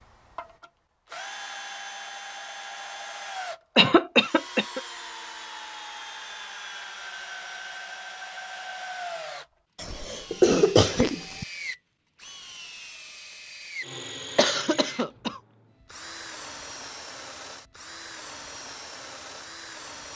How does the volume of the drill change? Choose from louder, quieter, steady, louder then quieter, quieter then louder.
steady.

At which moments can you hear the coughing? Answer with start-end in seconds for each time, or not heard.
3.8-4.8, 9.8-11.4, 14.3-15.4.